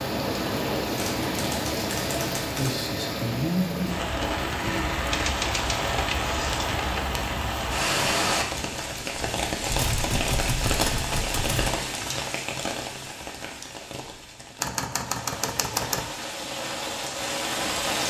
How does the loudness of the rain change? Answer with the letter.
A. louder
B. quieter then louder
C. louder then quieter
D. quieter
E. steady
D.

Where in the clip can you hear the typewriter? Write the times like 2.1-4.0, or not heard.
0.8-2.9, 5.1-7.0, 9.7-11.7, 14.6-16.1.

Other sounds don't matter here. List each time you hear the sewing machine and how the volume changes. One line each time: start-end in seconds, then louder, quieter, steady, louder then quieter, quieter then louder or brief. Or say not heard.
not heard.